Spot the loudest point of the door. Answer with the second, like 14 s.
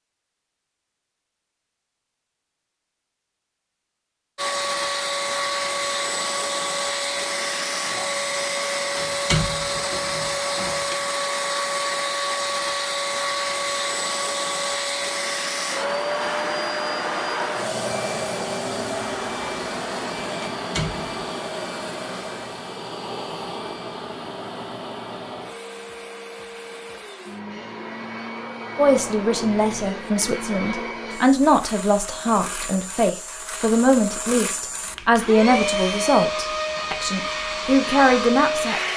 9 s.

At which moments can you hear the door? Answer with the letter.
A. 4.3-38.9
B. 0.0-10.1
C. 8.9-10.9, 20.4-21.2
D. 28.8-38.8
C.